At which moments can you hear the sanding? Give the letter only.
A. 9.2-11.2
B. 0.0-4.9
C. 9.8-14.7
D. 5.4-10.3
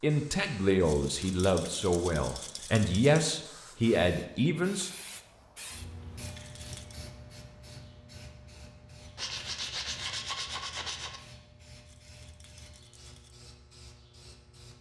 A.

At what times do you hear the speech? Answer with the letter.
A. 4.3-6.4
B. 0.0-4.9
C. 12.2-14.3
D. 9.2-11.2
B.